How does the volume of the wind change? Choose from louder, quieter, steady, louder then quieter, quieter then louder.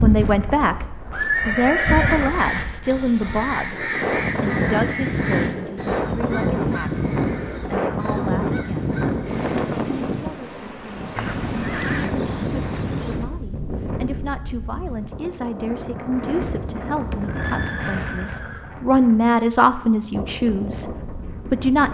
louder then quieter.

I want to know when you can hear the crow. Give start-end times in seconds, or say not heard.
1.8-9.7.